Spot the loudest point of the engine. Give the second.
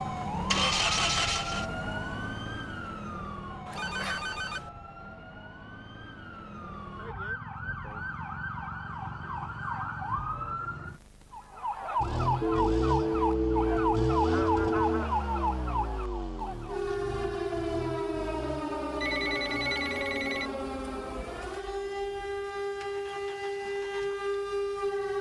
1 s.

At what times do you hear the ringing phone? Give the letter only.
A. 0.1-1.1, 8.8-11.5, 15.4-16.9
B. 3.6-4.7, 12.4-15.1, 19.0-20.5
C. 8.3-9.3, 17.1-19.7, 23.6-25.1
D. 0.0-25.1
B.